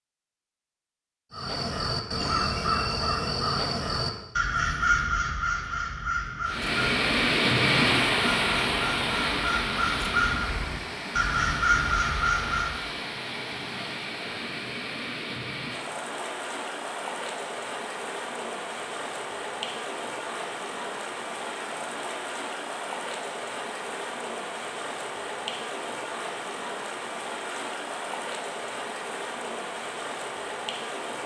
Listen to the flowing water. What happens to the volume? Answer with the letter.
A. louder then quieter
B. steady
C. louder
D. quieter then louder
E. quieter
E.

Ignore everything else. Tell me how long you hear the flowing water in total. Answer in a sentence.
You can hear the flowing water for 25 seconds altogether.